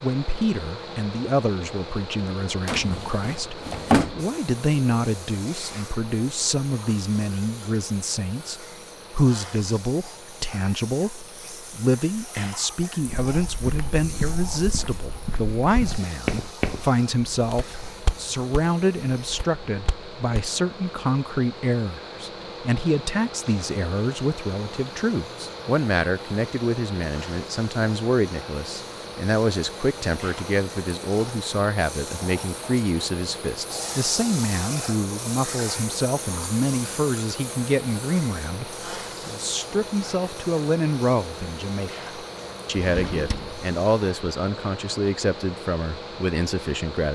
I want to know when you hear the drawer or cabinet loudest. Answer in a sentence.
The volume of the drawer or cabinet peaks at 4 seconds.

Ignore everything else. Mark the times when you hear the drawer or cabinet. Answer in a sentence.
The drawer or cabinet can be heard from 2.6 to 4.2 s and from 42.8 to 43.6 s.